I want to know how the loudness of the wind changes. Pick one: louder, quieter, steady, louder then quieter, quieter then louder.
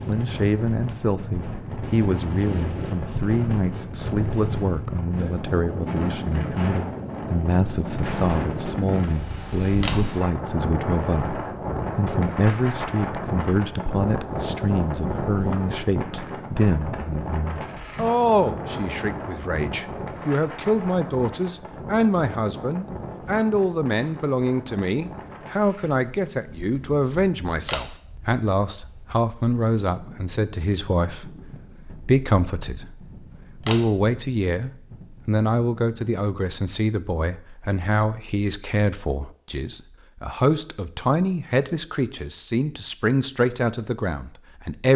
quieter.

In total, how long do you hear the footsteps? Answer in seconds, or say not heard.
not heard.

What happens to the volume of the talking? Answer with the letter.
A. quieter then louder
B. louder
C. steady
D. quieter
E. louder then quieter
C.